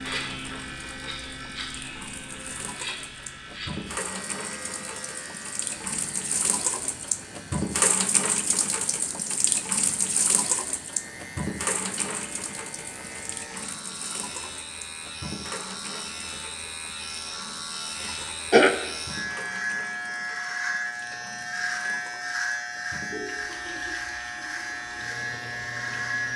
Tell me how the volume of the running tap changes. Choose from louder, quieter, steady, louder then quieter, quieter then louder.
louder then quieter.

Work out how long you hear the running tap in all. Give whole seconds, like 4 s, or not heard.
26 s.